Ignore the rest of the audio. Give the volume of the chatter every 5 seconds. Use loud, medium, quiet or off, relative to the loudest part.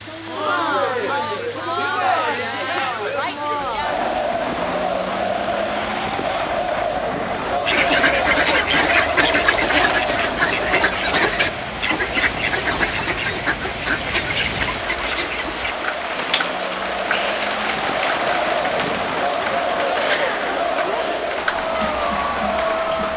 loud, loud, medium, loud, loud.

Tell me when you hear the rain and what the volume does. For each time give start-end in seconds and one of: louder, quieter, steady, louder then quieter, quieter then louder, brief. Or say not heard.
0.0-23.1 louder.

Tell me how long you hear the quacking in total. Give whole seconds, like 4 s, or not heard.
8 s.